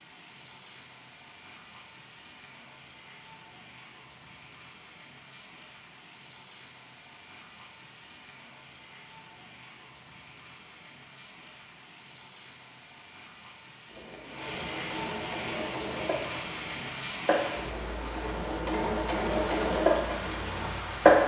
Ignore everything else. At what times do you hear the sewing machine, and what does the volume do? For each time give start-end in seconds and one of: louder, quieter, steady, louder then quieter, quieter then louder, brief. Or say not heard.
13.9-21.2 louder.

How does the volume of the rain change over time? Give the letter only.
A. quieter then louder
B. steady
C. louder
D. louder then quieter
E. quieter
C.